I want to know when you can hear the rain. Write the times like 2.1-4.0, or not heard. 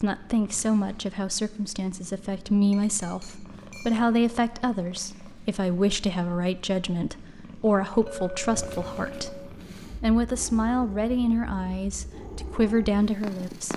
not heard.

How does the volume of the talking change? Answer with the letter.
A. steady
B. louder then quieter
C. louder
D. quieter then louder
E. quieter
A.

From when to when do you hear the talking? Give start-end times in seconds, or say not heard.
0.0-13.7.